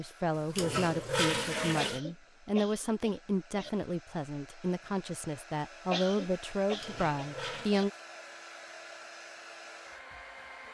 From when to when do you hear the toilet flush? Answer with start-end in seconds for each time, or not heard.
0.5-2.0, 6.8-7.7.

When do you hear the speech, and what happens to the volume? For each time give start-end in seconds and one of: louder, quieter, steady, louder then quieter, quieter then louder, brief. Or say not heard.
0.0-7.9 steady.